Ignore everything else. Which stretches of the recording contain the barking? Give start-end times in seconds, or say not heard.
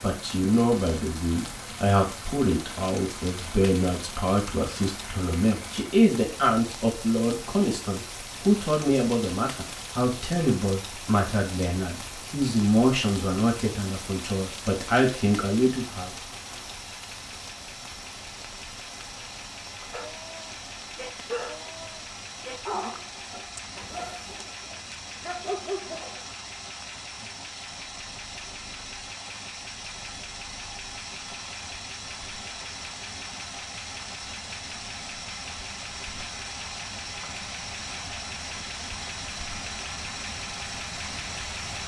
19.9-26.2.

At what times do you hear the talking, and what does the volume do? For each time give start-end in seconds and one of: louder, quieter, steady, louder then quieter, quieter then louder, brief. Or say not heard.
0.0-16.1 steady.